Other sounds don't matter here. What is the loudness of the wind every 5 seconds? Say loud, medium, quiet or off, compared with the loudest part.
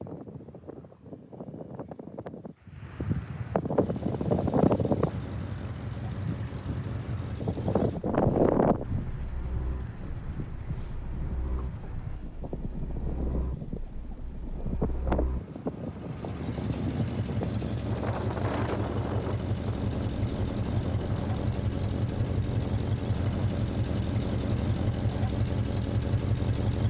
loud, loud, medium, medium, medium, off.